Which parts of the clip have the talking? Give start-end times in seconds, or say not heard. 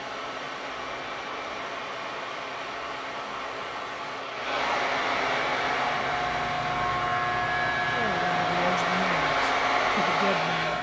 7.9-10.7.